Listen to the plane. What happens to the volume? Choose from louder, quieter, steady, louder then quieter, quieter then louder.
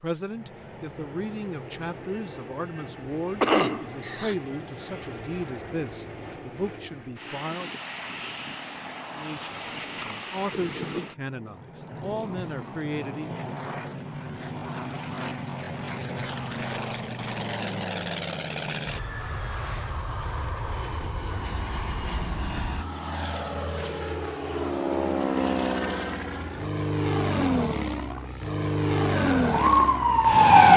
louder.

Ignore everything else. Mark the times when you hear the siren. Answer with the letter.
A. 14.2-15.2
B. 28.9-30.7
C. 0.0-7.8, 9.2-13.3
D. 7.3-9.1
B.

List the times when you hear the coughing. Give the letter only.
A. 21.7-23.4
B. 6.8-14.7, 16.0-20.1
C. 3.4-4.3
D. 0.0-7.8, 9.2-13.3
C.